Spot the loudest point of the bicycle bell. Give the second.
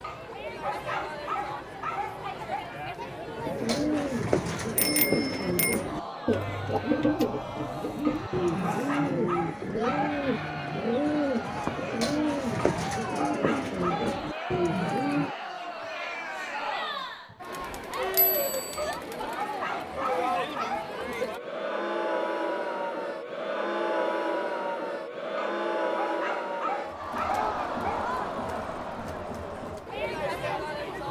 5 s.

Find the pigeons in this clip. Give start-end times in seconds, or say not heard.
3.4-15.3.